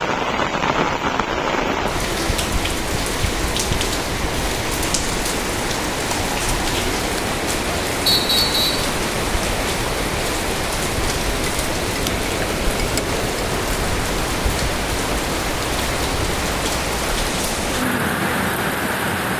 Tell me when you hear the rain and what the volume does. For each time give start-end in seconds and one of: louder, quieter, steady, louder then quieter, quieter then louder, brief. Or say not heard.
0.0-19.3 steady.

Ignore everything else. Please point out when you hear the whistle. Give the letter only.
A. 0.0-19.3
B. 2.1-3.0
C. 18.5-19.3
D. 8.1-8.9
D.